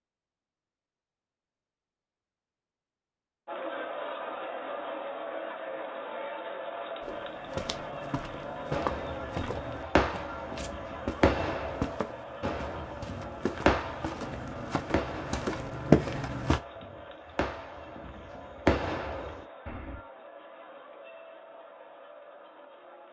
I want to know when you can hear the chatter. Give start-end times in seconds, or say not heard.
3.5-23.0.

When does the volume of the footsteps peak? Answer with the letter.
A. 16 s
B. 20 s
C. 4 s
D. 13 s
A.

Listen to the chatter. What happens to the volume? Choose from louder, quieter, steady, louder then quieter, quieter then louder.
quieter.